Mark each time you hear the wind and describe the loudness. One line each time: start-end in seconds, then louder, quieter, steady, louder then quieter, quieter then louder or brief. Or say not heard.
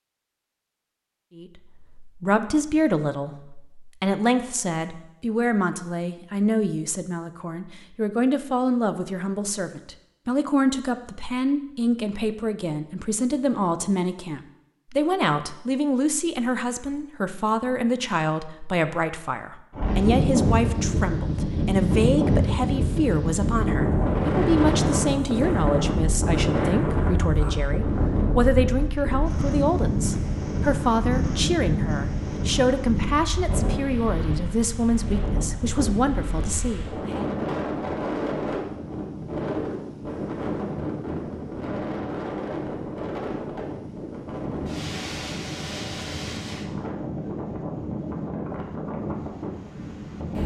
19.7-50.4 quieter.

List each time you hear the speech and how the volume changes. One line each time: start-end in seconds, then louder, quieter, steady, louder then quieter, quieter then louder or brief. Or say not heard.
1.4-37.3 steady.